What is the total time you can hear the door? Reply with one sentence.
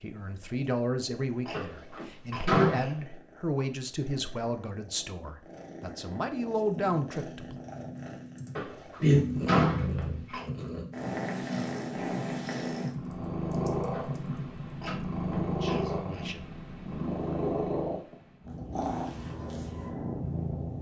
The door can be heard for 4 seconds in total.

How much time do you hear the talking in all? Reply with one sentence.
The talking can be heard for 9 seconds in total.